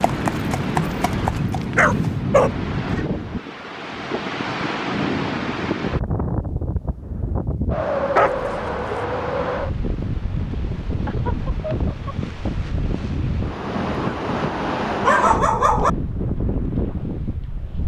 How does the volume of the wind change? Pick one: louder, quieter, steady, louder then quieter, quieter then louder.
steady.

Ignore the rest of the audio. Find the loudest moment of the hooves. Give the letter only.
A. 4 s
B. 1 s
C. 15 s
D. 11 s
B.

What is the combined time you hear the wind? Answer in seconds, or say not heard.
18 s.